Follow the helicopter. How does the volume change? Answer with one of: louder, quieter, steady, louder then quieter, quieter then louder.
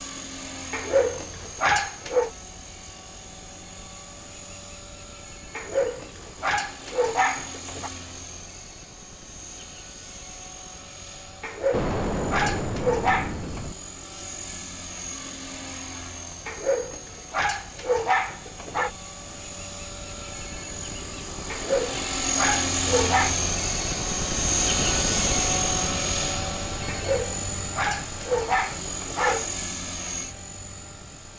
louder.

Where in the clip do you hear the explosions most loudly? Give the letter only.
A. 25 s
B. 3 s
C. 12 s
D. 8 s
C.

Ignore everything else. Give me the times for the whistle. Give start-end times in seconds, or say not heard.
not heard.